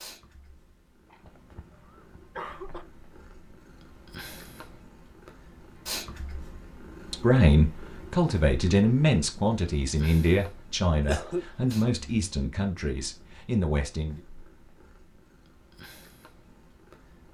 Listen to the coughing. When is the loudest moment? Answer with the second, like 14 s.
11 s.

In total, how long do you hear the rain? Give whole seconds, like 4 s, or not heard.
not heard.